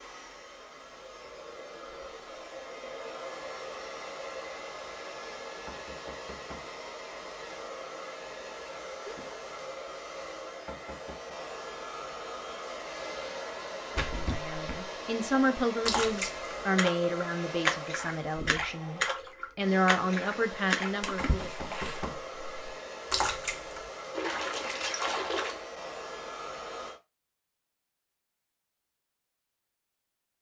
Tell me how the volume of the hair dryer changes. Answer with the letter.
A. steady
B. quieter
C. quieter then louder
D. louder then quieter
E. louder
A.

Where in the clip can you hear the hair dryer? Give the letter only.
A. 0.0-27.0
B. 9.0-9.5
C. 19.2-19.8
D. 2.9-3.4
A.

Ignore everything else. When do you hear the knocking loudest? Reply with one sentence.
The volume of the knocking peaks at 22 seconds.